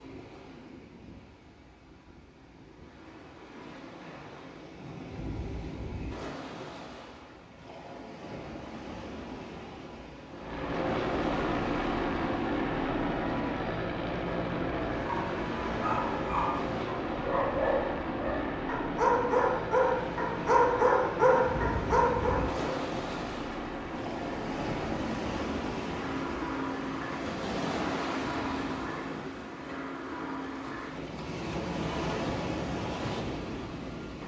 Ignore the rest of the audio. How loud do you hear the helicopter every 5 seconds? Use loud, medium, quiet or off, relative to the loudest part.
off, off, loud, loud, medium, medium, medium.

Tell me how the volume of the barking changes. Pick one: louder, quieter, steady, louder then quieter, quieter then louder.
louder.